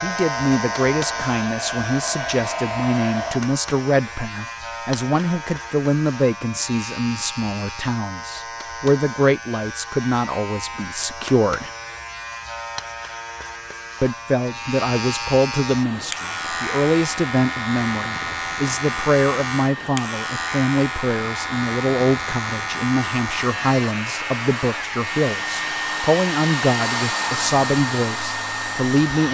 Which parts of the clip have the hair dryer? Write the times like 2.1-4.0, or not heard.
0.1-3.4, 15.7-29.2.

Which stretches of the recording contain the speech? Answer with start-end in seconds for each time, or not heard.
0.0-11.7, 14.0-29.2.